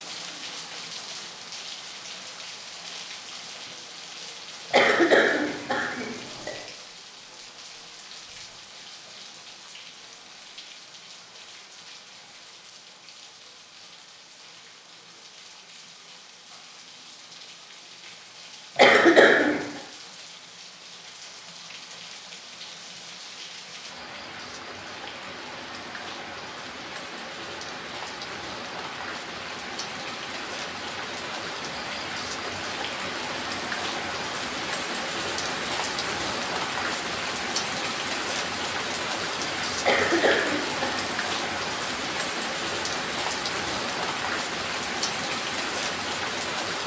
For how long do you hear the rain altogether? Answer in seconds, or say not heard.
47 s.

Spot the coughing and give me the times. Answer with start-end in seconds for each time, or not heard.
4.7-6.5, 18.8-19.6, 39.8-40.9.